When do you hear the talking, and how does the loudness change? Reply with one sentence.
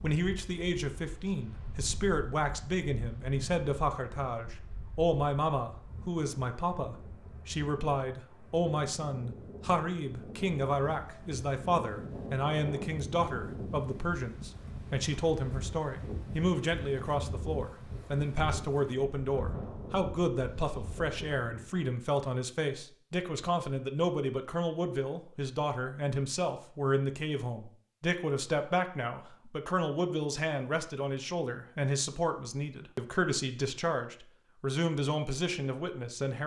The talking can be heard from 0.0 to 36.4 s, at a steady volume.